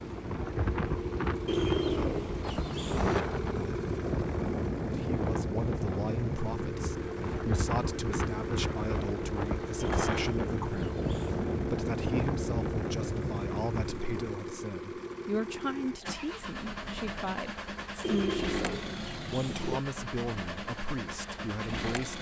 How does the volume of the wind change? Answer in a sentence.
The loudness of the wind stays about the same.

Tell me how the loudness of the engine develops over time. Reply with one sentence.
The loudness of the engine stays about the same.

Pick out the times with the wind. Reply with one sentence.
The wind can be heard from 0.0 to 14.4 s.